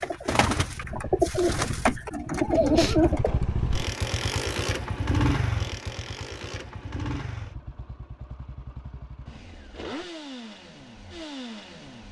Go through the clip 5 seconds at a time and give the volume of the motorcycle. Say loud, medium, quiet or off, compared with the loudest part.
loud, loud, medium.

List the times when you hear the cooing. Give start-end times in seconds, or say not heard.
0.0-3.3.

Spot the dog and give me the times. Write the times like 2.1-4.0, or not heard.
not heard.